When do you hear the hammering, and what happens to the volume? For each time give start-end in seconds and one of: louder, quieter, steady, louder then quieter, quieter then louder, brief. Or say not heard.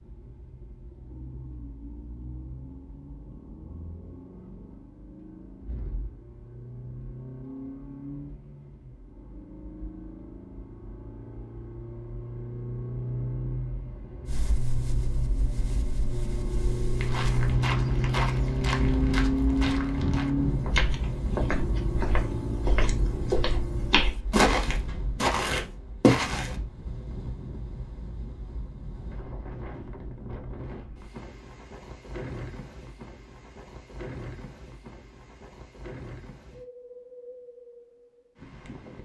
not heard.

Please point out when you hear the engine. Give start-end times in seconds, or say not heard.
0.0-25.0.